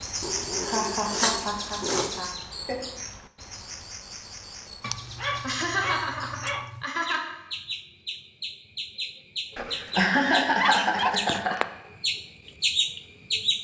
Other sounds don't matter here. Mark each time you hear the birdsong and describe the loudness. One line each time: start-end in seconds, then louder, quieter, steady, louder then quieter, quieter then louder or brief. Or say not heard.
0.0-13.5 quieter then louder.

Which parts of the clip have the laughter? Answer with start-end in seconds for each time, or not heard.
0.6-2.8, 5.4-7.3, 9.8-11.6.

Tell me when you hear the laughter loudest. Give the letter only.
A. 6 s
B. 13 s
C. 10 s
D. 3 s
C.